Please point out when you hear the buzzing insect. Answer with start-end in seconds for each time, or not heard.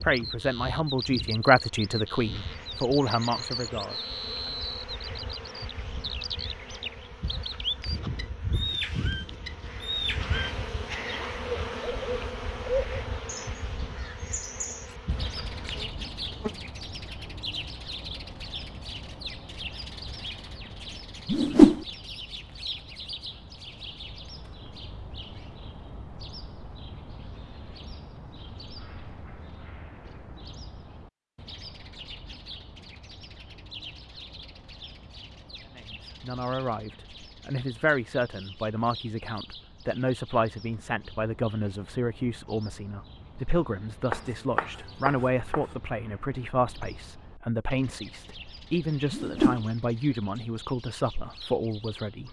0.0-16.7.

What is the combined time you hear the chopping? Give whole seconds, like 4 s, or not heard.
2 s.